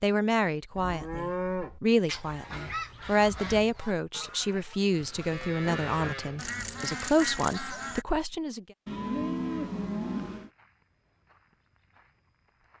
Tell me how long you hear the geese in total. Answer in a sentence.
The geese can be heard for 6 seconds in total.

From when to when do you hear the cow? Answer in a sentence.
You can hear the cow from 0.8 to 1.8 s, from 5.0 to 6.8 s and from 8.8 to 10.5 s.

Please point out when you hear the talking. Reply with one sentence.
You can hear the talking from 0.0 to 8.7 s.